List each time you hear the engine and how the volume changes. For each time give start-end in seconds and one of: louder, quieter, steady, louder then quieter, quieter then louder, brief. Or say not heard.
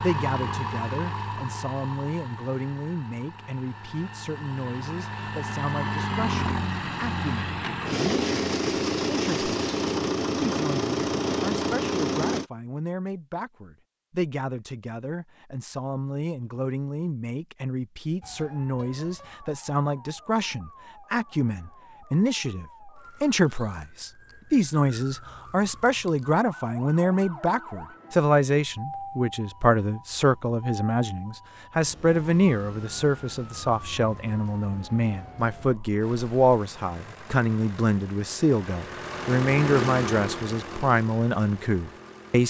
0.0-12.4 quieter then louder
36.0-42.4 louder then quieter.